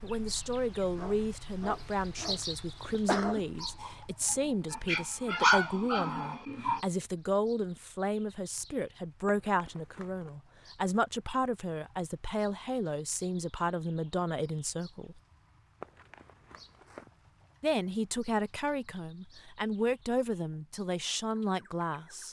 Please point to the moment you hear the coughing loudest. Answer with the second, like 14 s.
3 s.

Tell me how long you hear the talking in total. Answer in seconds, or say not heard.
20 s.